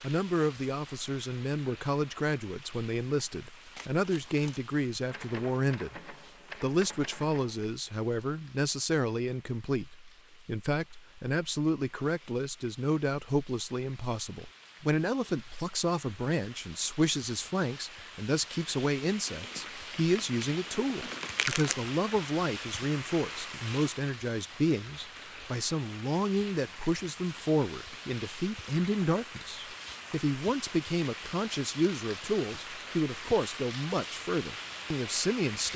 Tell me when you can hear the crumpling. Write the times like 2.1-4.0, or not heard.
3.8-4.6, 19.2-21.8.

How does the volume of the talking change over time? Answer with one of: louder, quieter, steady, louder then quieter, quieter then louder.
steady.